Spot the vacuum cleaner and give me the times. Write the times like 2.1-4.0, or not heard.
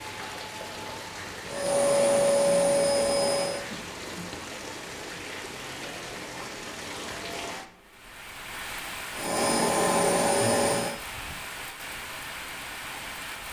1.4-3.6, 9.2-10.9.